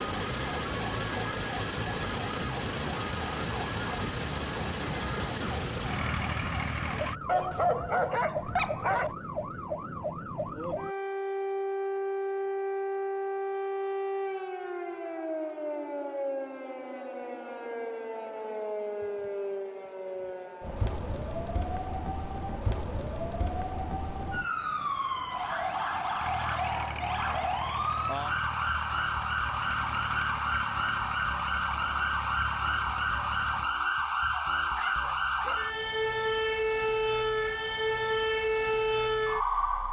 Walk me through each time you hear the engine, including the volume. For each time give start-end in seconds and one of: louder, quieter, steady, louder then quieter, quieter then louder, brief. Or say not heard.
0.0-7.2 steady
26.2-33.7 steady.